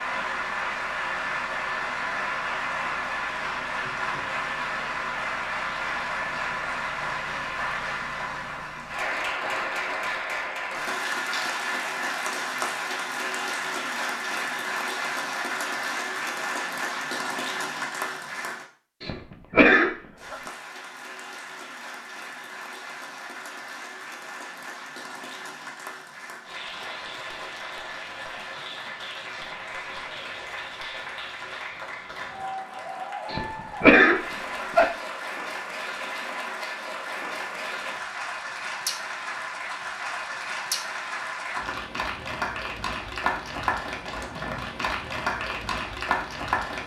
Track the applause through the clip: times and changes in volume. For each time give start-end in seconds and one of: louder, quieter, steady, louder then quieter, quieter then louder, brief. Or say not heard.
0.0-18.6 steady
20.1-46.8 louder.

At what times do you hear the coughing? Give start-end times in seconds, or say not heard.
19.0-20.4, 33.3-34.9.